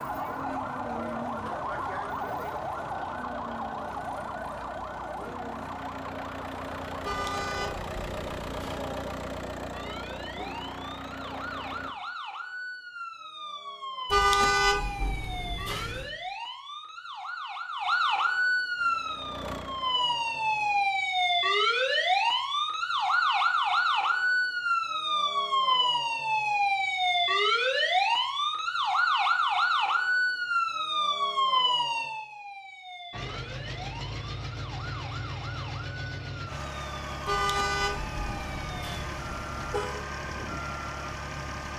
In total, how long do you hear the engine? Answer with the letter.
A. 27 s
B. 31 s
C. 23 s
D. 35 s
C.